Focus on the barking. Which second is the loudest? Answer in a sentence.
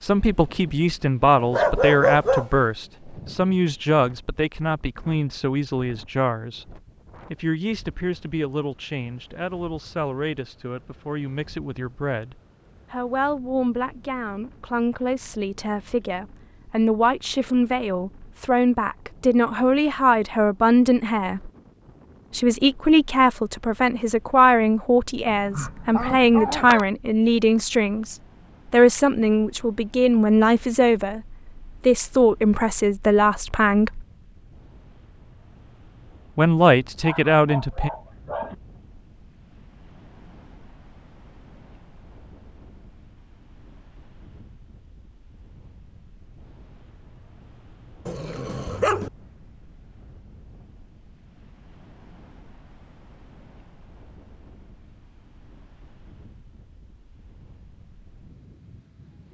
The loudest moment of the barking is at 2 seconds.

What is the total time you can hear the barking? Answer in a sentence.
You can hear the barking for 5 seconds altogether.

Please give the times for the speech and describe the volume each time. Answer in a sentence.
You can hear the speech from 0.0 to 21.5 s, getting quieter then louder; from 22.3 to 34.0 s, at a steady volume; and briefly from 36.4 to 37.9 s.